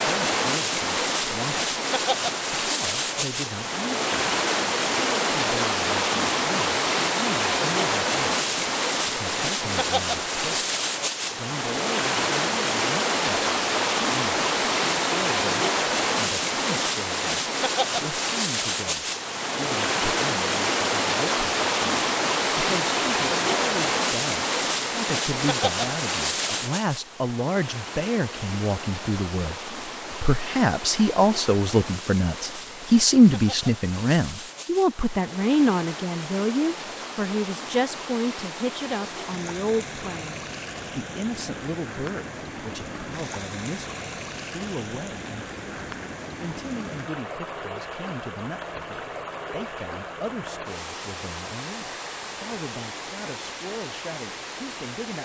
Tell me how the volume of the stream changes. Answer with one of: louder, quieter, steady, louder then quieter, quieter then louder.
quieter.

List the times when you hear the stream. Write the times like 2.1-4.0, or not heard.
0.0-55.2.